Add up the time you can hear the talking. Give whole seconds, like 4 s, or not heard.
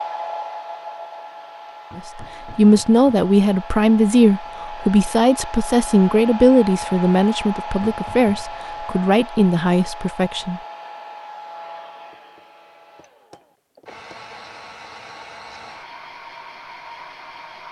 9 s.